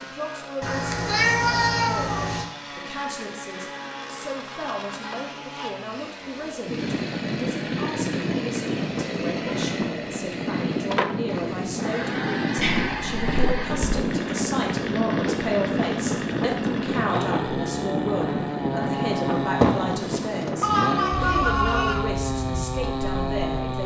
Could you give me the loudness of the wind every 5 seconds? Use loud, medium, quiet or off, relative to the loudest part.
off, loud, loud, loud, medium.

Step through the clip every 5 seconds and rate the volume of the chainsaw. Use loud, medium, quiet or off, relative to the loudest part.
medium, medium, loud, loud, loud.